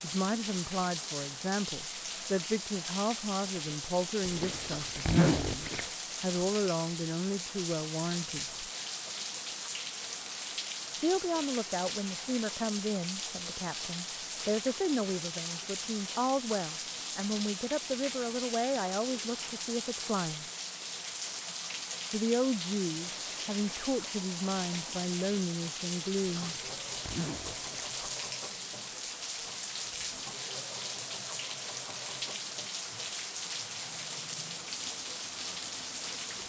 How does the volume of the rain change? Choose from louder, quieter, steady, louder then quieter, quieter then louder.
steady.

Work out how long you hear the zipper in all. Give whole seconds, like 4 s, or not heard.
3 s.